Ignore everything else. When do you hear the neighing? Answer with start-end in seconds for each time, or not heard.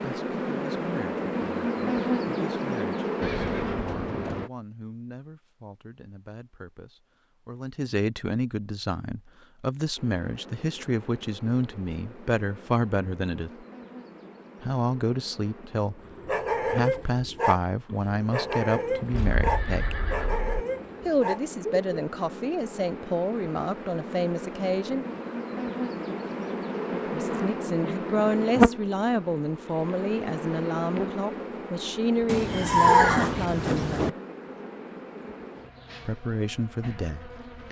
3.2-4.5, 19.1-20.6, 32.2-34.1.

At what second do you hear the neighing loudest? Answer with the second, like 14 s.
33 s.